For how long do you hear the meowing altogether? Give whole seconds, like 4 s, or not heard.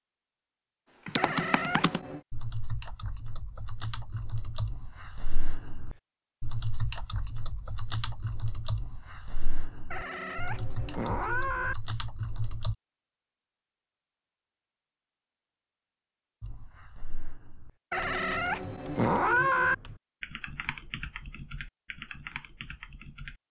5 s.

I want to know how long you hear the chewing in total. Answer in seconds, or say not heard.
not heard.